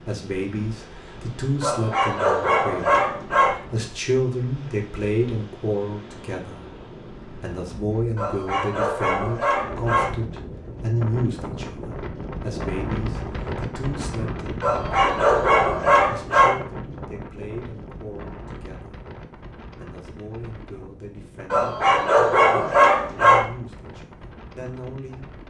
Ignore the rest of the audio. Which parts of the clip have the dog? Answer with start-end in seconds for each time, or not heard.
1.6-3.5, 8.2-10.1, 14.6-16.6, 21.5-23.4.